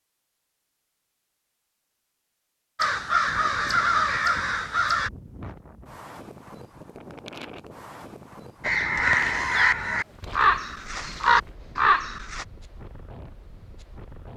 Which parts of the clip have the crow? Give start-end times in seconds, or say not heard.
2.8-5.1, 8.6-12.4.